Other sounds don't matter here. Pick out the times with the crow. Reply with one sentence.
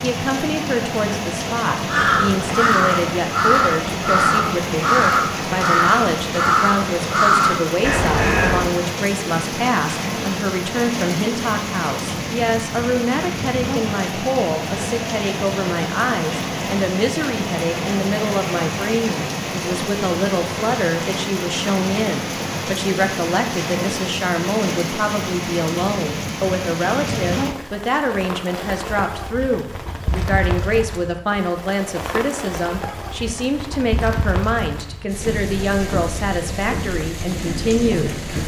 The crow can be heard from 1.9 to 8.7 s.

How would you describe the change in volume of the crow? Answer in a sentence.
The loudness of the crow stays about the same.